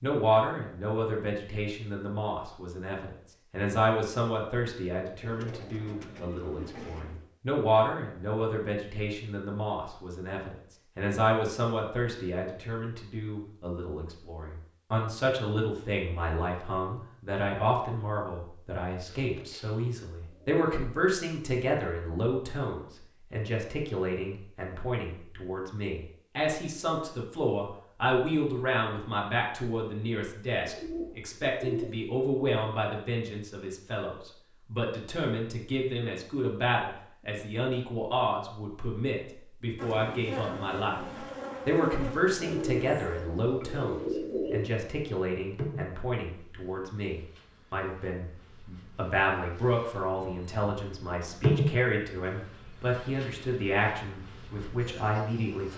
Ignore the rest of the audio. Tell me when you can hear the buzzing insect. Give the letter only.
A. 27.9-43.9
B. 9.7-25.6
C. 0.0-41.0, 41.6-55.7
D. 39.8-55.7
D.